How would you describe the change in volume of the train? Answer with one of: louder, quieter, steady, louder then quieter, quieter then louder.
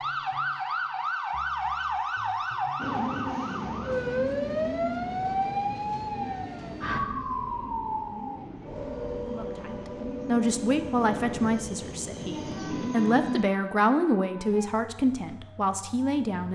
quieter then louder.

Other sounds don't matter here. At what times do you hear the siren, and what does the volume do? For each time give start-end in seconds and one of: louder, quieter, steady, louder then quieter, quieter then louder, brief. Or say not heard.
0.0-16.5 quieter.